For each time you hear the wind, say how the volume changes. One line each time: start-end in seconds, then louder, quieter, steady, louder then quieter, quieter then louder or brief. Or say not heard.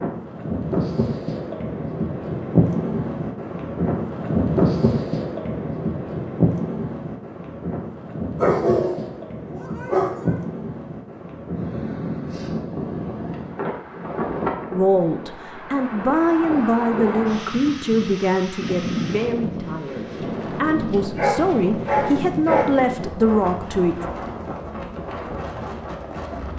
0.0-26.5 quieter.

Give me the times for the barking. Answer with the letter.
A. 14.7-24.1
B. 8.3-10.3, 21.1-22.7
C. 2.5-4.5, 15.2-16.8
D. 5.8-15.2
B.